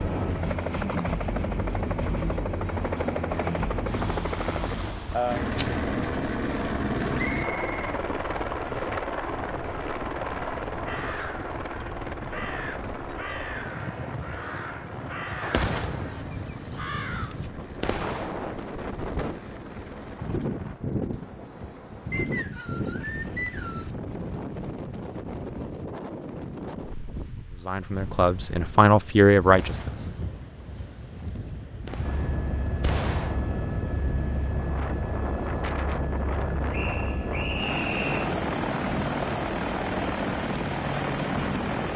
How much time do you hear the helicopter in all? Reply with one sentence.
The helicopter can be heard for 31 seconds in total.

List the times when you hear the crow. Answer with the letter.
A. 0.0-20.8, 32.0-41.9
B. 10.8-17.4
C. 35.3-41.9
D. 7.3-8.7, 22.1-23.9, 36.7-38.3
B.